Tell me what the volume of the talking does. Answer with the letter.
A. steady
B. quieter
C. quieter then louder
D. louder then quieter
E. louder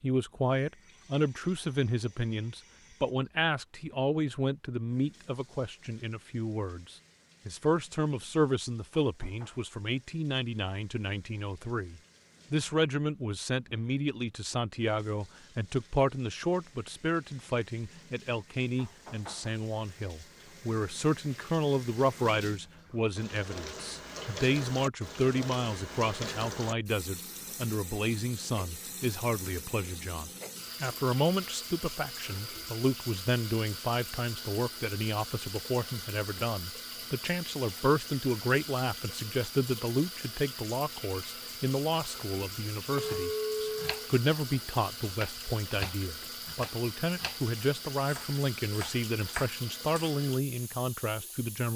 A.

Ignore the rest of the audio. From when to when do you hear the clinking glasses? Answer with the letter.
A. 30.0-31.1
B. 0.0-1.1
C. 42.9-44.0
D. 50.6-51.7
C.